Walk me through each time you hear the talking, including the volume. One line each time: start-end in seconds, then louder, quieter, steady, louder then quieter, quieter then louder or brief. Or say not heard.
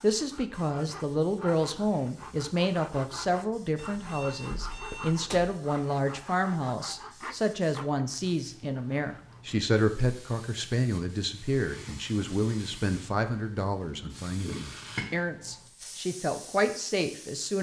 0.0-17.5 steady.